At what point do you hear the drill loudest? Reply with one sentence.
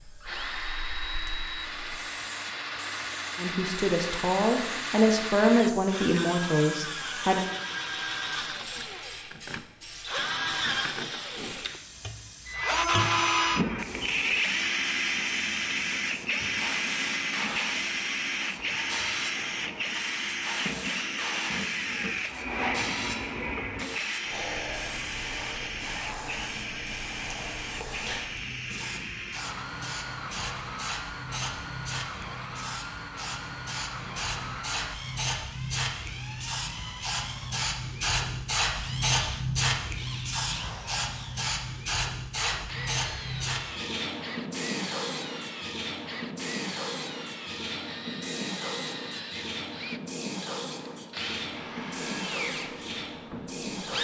The loudest moment of the drill is at 13 seconds.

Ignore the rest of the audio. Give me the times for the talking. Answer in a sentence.
The talking can be heard from 3.4 to 7.5 s.